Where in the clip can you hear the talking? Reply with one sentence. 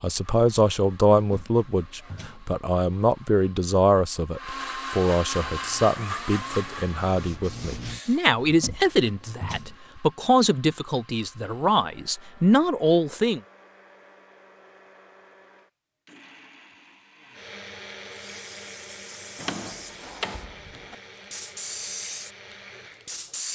You can hear the talking from 0.0 to 13.4 s.